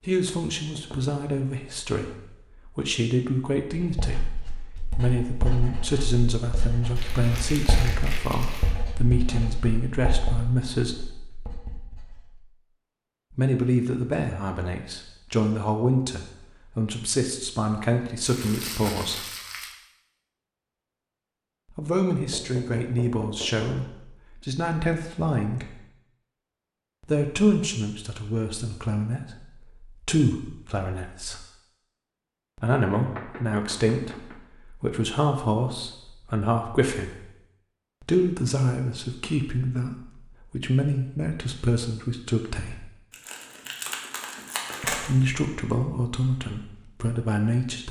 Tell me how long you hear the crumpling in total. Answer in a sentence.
The crumpling can be heard for 5 seconds in total.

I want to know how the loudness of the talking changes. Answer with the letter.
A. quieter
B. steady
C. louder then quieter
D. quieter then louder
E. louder
B.